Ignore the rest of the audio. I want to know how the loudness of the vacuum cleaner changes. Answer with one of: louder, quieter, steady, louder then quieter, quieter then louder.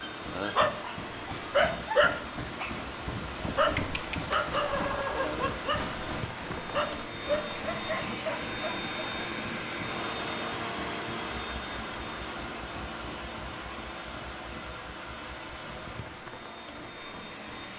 louder then quieter.